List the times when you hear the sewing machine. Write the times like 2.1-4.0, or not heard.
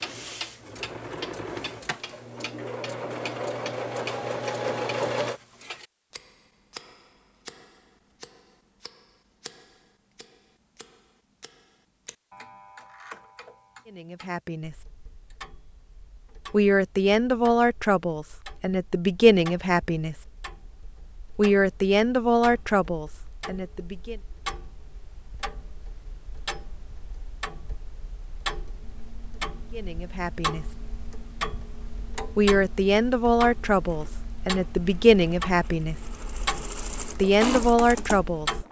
0.0-5.4, 33.8-38.6.